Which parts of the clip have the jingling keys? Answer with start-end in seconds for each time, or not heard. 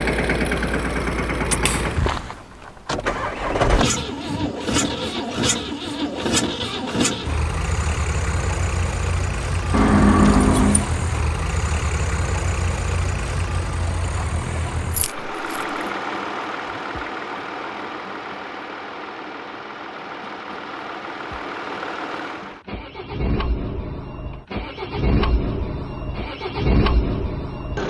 9.7-10.8, 14.9-15.8.